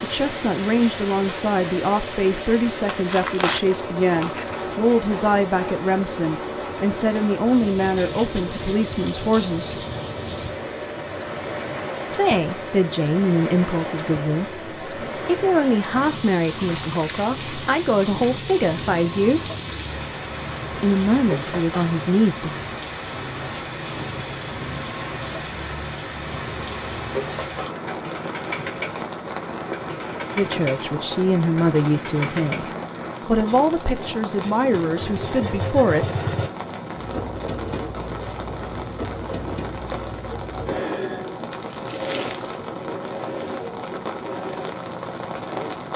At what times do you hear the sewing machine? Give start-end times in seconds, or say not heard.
0.0-45.8.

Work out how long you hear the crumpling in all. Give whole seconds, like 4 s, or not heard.
3 s.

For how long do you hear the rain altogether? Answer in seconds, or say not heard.
46 s.